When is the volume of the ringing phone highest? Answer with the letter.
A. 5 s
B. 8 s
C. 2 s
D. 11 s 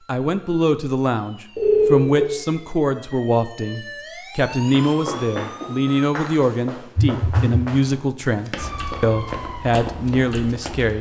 C.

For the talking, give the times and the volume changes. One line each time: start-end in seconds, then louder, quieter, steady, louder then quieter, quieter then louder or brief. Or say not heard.
0.1-10.9 steady.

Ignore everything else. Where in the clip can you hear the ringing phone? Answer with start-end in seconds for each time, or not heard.
1.6-2.3, 7.0-7.5.